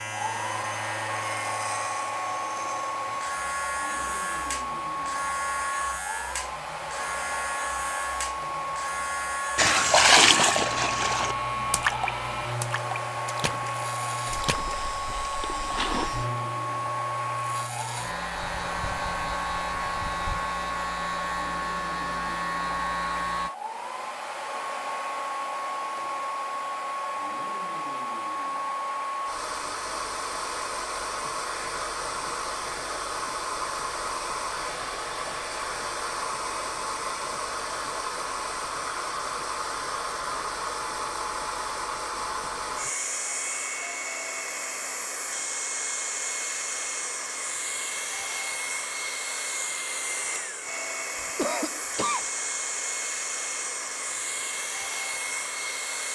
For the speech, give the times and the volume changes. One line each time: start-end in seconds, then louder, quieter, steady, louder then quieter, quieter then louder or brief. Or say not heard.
not heard.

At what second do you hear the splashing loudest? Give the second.
10 s.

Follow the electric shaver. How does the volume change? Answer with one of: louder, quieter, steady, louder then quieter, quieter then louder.
steady.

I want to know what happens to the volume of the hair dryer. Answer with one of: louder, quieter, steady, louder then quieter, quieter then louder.
steady.